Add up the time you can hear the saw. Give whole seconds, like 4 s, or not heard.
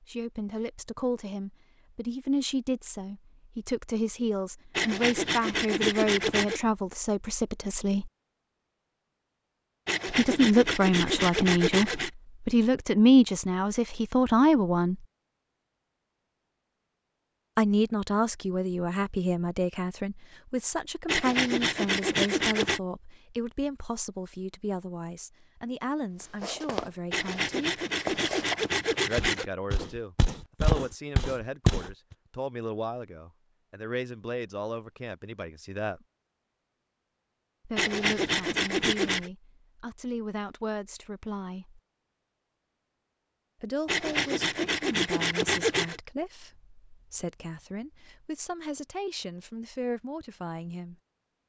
12 s.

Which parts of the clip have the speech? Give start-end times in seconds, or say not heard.
0.0-8.1, 10.1-15.1, 17.6-27.9, 29.1-36.0, 37.6-41.8, 43.6-51.0.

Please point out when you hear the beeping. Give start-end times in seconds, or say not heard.
not heard.